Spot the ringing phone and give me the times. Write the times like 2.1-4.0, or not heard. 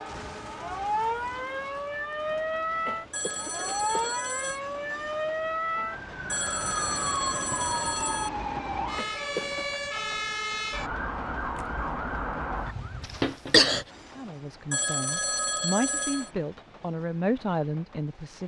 3.1-4.6, 6.3-8.3, 14.7-16.3.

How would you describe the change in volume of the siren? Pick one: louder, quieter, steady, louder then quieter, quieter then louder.
steady.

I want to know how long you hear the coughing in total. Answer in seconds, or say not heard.
3 s.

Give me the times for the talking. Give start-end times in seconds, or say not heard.
14.2-18.4.